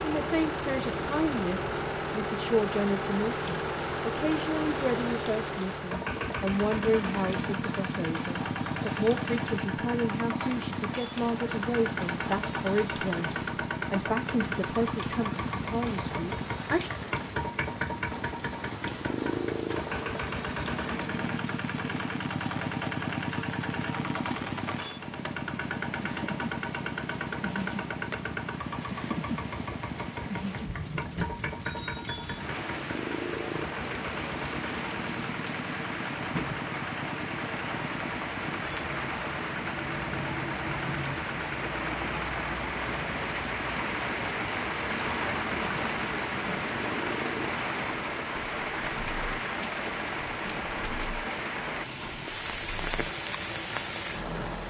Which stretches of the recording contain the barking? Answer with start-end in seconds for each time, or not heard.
not heard.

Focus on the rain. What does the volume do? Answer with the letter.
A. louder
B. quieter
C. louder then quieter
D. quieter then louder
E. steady
A.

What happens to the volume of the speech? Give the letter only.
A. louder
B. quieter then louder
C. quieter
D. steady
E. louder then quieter
D.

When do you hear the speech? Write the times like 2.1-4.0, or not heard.
0.0-16.9.